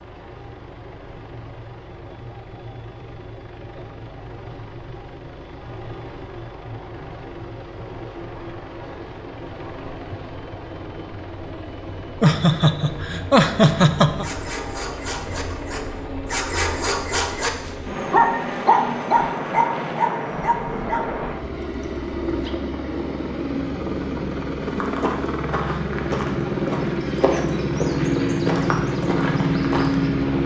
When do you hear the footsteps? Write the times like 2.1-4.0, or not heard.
24.6-30.1.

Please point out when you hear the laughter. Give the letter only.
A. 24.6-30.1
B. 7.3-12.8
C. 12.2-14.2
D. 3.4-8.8
C.